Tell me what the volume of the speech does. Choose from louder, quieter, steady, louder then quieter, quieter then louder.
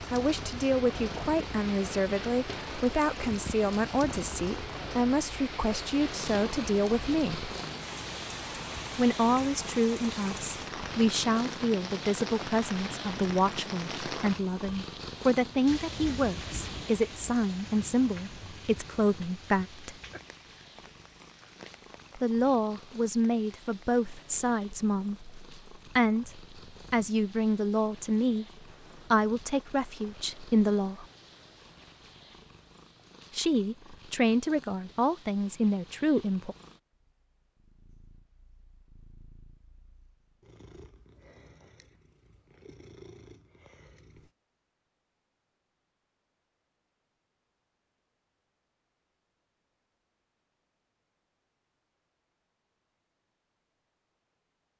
steady.